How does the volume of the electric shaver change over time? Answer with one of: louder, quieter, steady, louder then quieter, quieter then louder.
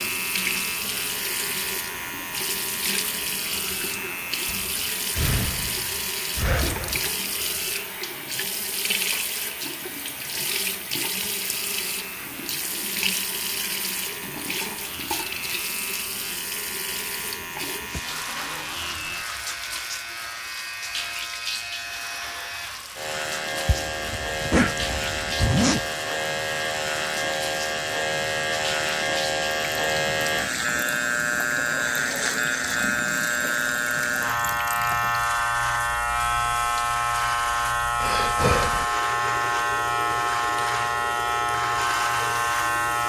louder.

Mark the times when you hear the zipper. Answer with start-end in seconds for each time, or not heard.
23.6-25.9.